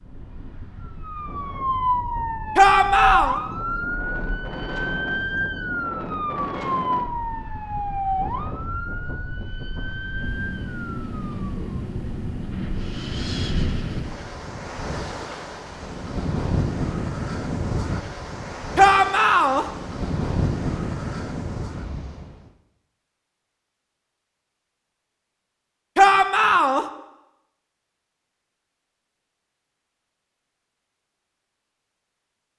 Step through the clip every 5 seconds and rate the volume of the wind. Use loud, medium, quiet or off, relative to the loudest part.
medium, medium, loud, loud, loud, off, off.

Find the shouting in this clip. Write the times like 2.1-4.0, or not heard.
2.5-3.4, 18.8-19.6, 25.9-26.9.